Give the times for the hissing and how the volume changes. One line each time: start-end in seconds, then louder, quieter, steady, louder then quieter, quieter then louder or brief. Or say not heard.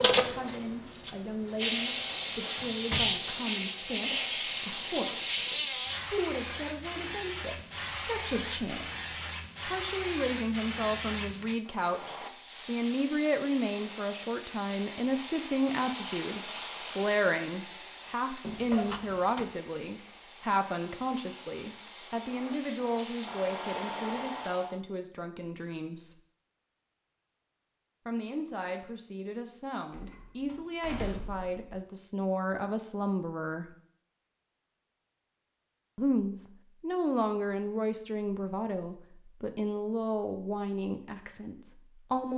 0.0-24.8 quieter.